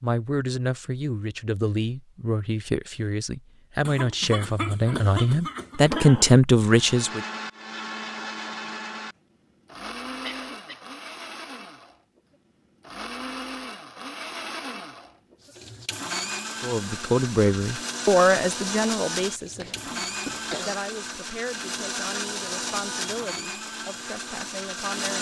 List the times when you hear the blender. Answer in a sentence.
You can hear the blender from 6.7 to 25.1 s.